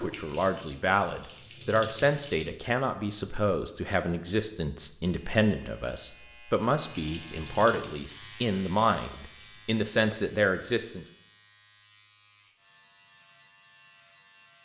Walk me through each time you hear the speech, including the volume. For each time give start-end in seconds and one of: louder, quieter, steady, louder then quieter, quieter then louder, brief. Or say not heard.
0.0-11.1 steady.